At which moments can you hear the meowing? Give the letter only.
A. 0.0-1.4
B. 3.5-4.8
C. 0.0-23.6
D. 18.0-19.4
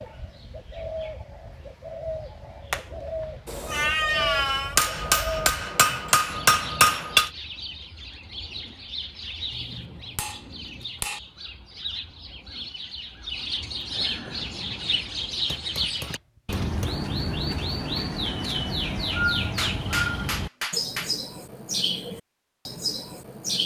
B.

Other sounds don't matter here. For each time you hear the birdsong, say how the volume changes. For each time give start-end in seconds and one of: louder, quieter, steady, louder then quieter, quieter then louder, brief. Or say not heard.
0.0-23.6 louder.